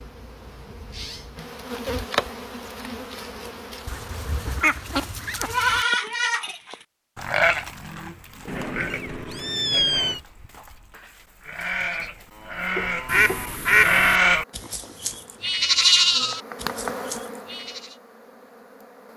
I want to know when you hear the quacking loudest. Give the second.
14 s.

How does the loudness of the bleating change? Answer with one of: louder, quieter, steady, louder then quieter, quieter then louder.
quieter then louder.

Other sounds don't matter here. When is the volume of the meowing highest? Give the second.
10 s.